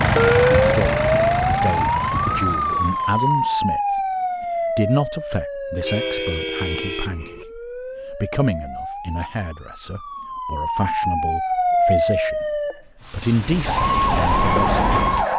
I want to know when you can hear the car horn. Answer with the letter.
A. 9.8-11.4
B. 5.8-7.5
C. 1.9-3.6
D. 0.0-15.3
B.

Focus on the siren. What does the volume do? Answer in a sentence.
The loudness of the siren goes down, then up.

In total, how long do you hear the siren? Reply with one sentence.
The siren can be heard for 15 seconds in total.